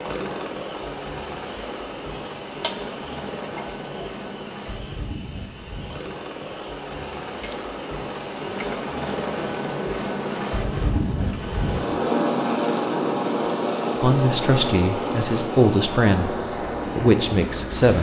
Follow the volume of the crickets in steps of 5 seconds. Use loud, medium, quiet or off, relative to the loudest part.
loud, loud, medium, loud.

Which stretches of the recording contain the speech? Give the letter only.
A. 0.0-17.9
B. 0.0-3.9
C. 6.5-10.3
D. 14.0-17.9
D.